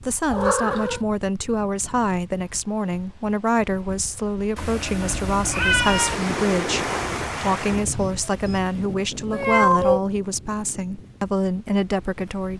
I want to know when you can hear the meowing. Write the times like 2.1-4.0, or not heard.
0.3-1.0, 4.5-6.2, 9.3-10.0.